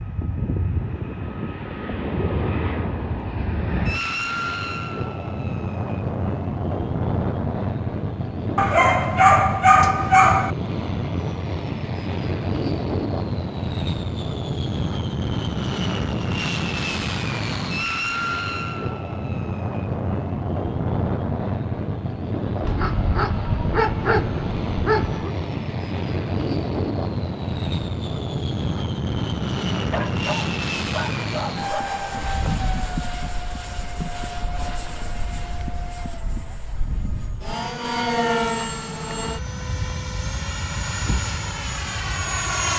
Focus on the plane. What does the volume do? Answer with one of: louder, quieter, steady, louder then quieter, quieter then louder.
steady.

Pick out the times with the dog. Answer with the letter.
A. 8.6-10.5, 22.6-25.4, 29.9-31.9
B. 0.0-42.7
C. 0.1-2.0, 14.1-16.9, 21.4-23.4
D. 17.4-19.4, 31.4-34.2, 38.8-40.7
A.